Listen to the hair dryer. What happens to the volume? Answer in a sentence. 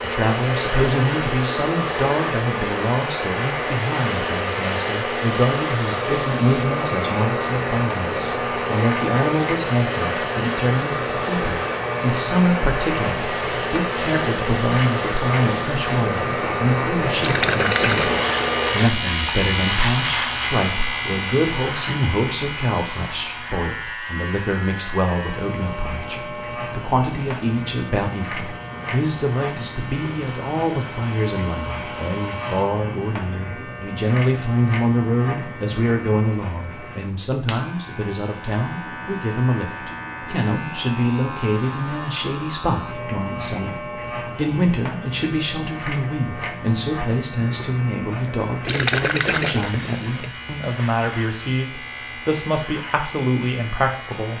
The loudness of the hair dryer goes down.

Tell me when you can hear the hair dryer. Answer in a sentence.
The hair dryer can be heard from 0.0 to 32.6 s.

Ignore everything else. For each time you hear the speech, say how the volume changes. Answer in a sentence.
The speech can be heard from 0.0 to 54.3 s, at a steady volume.